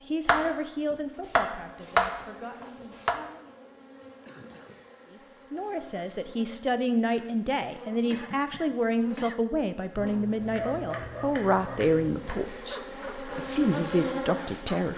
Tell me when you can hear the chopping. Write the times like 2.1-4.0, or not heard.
0.2-3.1, 10.6-12.3.